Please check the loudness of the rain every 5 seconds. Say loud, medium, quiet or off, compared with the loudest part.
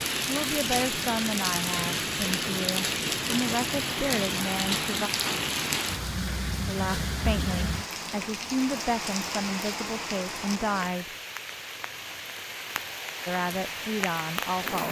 loud, loud, medium.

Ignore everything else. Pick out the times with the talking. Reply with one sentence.
The talking can be heard from 0.2 to 5.1 s, from 6.7 to 11.1 s and from 13.2 to 14.8 s.